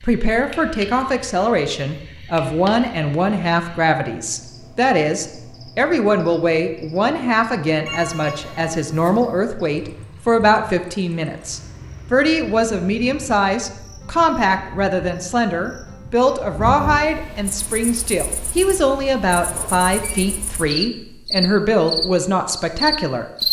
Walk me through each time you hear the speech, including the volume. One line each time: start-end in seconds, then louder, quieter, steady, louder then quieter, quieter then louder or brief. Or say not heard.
0.0-23.2 steady.